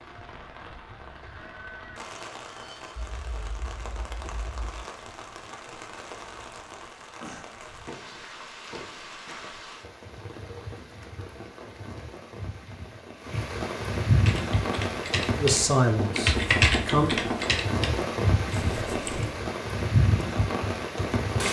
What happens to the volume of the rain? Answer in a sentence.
The loudness of the rain goes up.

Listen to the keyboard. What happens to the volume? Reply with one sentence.
The volume of the keyboard goes up, then down.